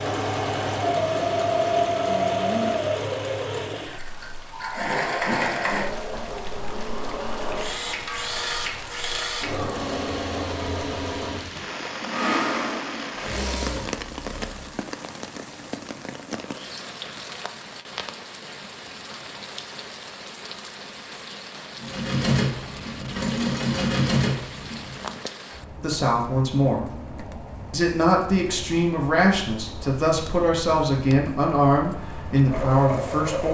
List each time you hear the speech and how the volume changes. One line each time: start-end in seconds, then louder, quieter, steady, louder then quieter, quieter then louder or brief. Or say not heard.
25.8-26.9 brief
27.7-33.4 steady.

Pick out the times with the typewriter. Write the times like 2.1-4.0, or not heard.
not heard.